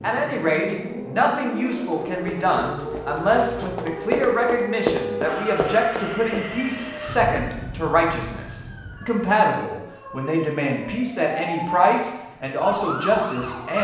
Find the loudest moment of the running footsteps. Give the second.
5 s.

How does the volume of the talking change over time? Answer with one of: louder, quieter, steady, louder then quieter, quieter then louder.
steady.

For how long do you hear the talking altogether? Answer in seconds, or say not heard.
14 s.